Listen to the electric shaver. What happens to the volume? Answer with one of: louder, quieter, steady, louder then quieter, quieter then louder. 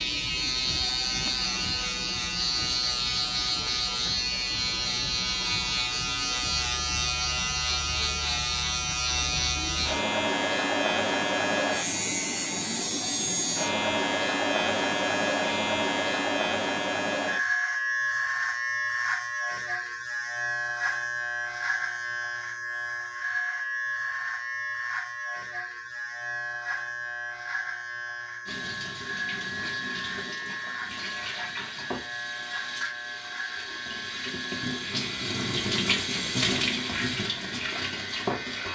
quieter.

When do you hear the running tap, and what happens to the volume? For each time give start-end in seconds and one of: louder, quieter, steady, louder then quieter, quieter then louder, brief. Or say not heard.
28.4-38.6 louder.